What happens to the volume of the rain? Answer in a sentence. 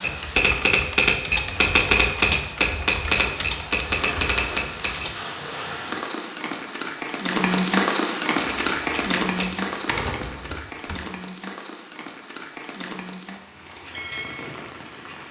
The loudness of the rain goes up, then down.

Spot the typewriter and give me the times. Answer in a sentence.
You can hear the typewriter from 0.0 to 5.2 s and from 8.3 to 10.9 s.